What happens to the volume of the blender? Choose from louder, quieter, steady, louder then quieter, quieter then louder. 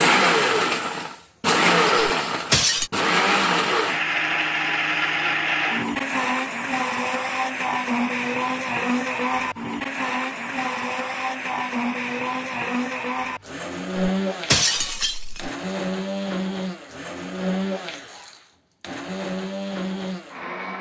quieter.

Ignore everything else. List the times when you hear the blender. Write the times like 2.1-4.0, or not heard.
0.0-20.7.